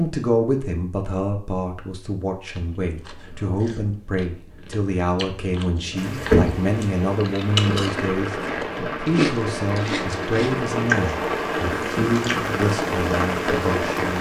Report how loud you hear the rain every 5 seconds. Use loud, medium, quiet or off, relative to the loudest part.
off, loud, loud.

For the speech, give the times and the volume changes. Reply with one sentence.
The speech can be heard from 0.0 to 14.1 s, at a steady volume.